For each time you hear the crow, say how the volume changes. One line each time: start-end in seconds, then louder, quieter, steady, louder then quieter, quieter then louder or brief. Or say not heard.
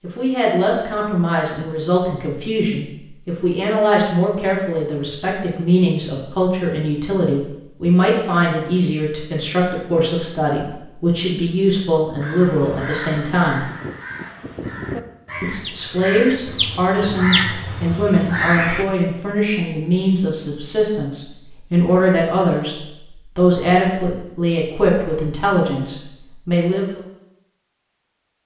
12.2-18.9 louder.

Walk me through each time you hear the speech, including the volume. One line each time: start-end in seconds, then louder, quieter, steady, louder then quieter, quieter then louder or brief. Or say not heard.
0.0-13.7 steady
15.4-27.0 steady.